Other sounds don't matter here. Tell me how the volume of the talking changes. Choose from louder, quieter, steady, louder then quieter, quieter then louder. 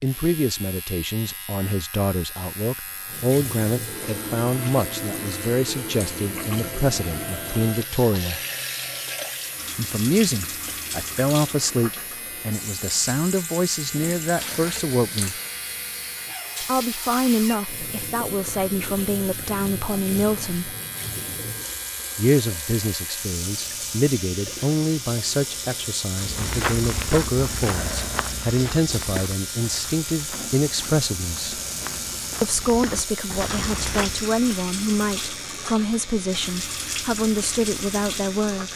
steady.